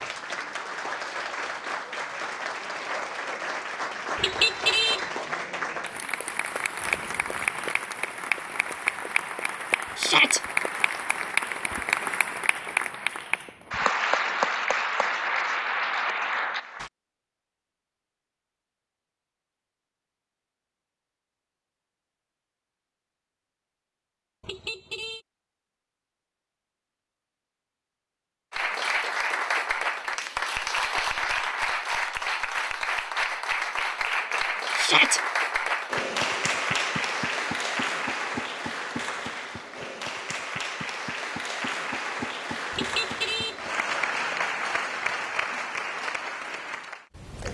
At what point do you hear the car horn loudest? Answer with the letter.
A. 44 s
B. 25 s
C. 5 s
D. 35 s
C.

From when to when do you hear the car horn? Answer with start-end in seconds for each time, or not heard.
4.2-5.0, 24.4-25.2, 42.7-43.5.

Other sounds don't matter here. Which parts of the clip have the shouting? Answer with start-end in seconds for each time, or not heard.
9.9-10.4, 34.8-35.2.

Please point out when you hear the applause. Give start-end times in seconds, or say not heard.
0.0-16.9, 28.5-47.5.